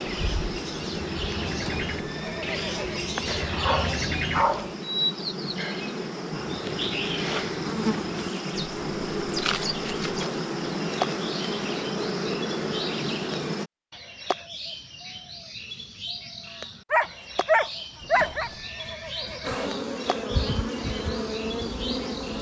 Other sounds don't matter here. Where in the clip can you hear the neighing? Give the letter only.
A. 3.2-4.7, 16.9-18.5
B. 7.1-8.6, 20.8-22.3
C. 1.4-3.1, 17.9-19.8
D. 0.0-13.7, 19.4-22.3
C.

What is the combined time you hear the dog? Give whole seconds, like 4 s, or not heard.
3 s.